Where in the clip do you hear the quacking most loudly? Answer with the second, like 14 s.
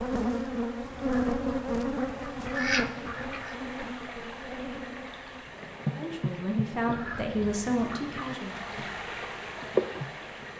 3 s.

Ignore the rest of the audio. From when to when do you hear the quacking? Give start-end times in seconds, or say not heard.
0.8-3.5, 6.8-8.4.